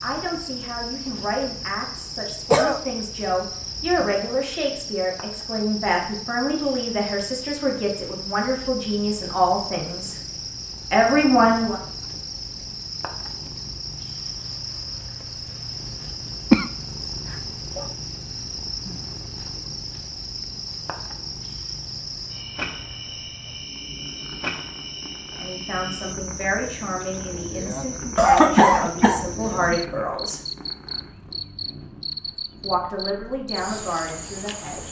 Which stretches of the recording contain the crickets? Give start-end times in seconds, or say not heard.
0.0-34.8.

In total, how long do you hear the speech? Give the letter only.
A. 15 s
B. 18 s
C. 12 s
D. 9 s
B.